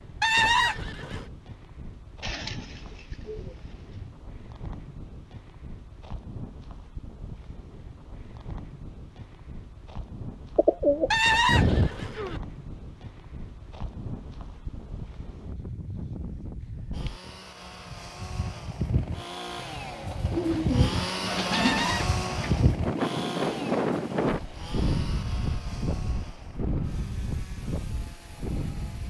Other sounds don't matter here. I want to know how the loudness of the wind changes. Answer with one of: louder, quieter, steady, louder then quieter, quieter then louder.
louder.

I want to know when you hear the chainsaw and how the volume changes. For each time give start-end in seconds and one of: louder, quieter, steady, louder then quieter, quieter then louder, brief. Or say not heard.
16.9-29.0 louder then quieter.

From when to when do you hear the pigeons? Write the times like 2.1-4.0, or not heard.
2.2-4.2, 10.6-12.1, 20.3-22.8.